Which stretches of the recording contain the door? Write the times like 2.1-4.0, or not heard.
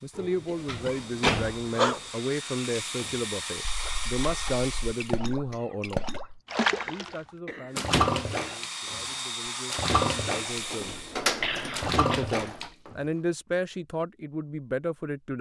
0.1-1.6, 7.8-8.2, 10.5-12.7.